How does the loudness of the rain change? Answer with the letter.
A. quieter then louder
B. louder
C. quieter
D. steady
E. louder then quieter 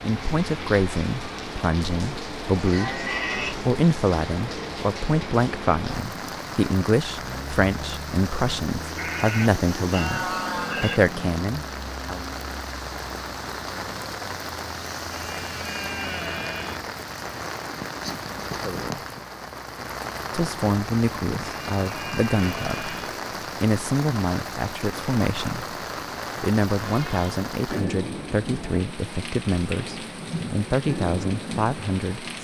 D.